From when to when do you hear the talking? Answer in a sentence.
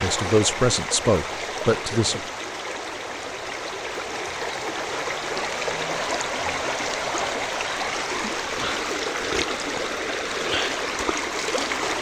The talking can be heard from 0.0 to 2.2 s.